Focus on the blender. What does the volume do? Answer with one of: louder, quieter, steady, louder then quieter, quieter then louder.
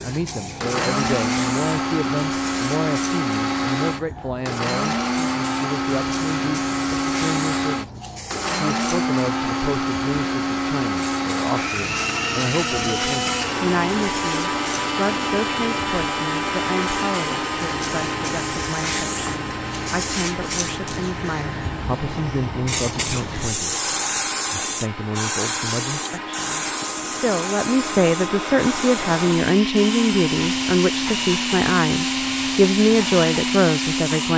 quieter then louder.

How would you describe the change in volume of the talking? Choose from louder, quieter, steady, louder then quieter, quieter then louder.
louder.